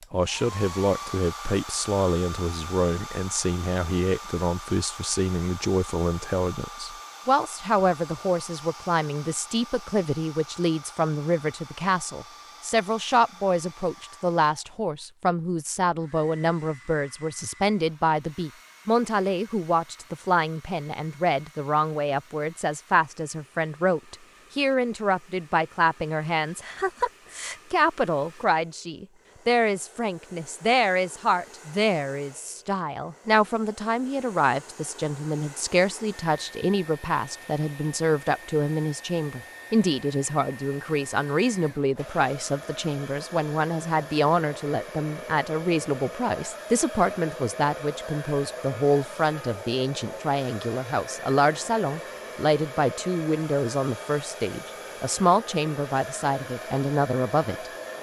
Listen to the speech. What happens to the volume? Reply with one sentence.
The loudness of the speech stays about the same.